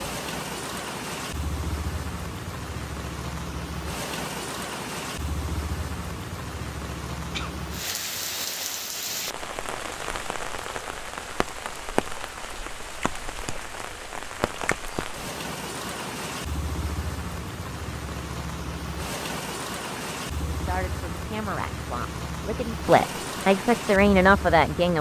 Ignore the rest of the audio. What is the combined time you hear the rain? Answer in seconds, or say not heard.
25 s.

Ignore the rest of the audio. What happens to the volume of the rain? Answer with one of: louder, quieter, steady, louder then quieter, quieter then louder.
steady.